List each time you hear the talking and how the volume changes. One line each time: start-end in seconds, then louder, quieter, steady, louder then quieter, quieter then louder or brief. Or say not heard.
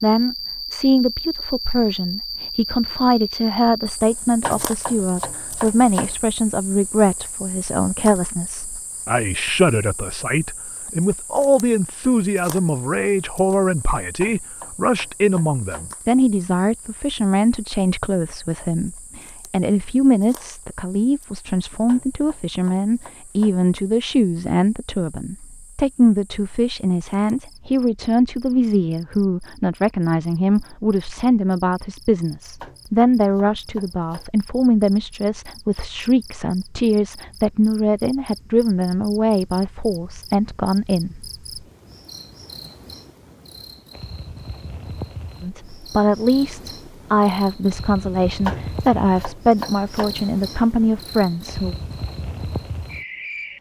0.0-41.3 steady
45.4-51.8 steady.